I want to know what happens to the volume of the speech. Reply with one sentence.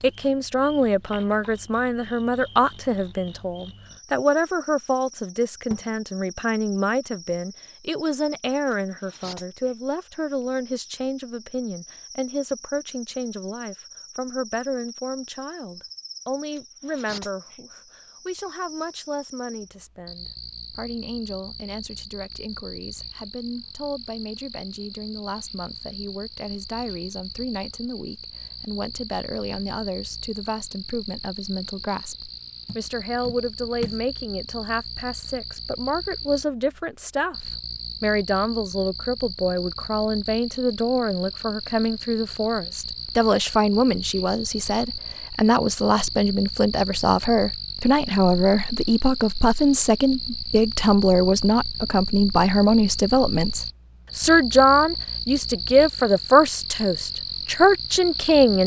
The volume of the speech goes down, then up.